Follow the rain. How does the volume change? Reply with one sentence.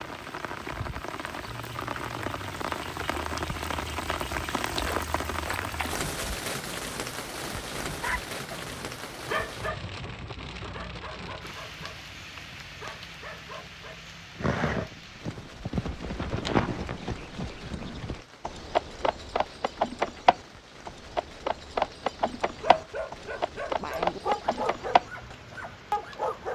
The loudness of the rain goes down.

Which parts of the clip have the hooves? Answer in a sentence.
You can hear the hooves from 14.3 to 25.4 s.